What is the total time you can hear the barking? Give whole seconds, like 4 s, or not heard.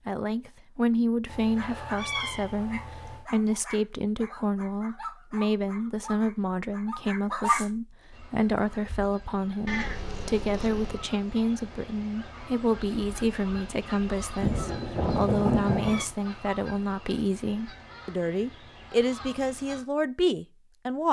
6 s.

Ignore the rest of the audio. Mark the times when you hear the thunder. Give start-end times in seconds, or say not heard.
14.4-16.1.